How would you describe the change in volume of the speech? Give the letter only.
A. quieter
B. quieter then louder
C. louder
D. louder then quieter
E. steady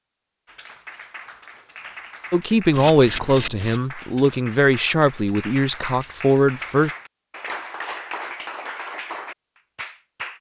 B.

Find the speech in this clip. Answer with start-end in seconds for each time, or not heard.
2.3-6.9.